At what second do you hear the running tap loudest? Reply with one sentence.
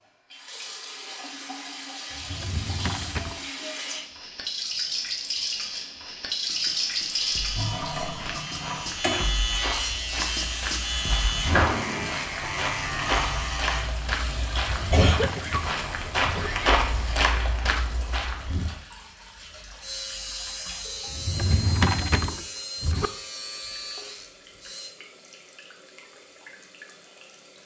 The loudest moment of the running tap is at 7 seconds.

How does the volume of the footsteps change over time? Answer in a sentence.
The loudness of the footsteps goes up.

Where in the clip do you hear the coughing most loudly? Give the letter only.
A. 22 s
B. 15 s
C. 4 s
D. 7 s
B.